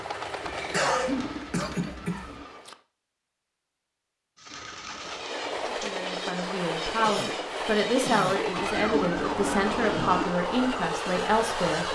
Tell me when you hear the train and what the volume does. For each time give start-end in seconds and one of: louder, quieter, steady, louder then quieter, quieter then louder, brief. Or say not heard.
0.0-2.8 brief
4.9-11.9 steady.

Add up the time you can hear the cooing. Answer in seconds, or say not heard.
5 s.